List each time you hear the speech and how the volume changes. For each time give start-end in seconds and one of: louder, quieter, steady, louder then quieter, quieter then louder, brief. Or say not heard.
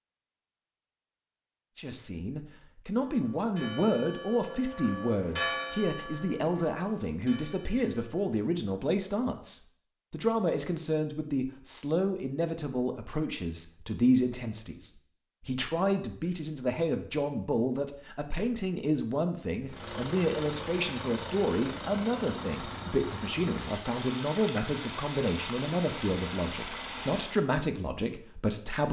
1.8-28.8 steady.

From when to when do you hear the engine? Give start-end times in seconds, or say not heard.
19.6-27.4.